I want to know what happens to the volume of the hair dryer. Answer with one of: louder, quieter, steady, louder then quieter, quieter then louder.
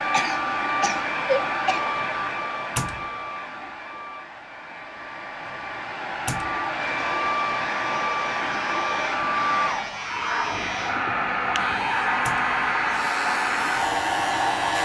quieter then louder.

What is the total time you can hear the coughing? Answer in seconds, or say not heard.
2 s.